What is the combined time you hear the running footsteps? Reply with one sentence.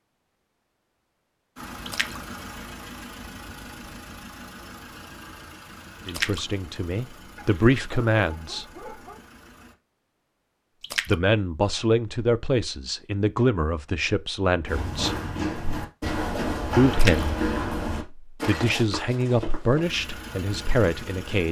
You can hear the running footsteps for 5 seconds altogether.